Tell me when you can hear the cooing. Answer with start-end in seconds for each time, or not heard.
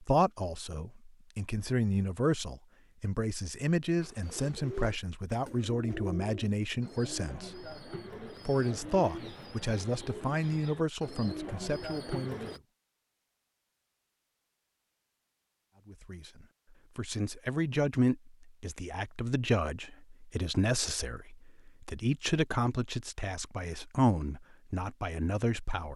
4.0-12.6.